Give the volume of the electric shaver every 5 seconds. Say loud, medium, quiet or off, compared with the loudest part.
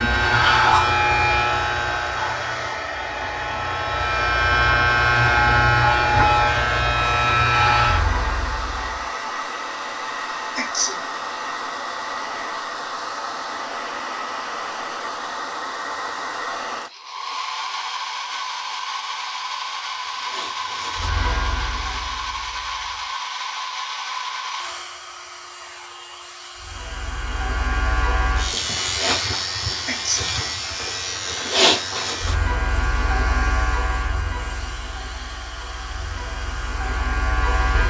loud, loud, off, off, quiet, medium, medium, medium.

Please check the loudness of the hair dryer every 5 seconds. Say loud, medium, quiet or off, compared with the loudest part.
loud, loud, loud, loud, loud, medium, medium, medium.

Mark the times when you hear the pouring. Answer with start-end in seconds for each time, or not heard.
not heard.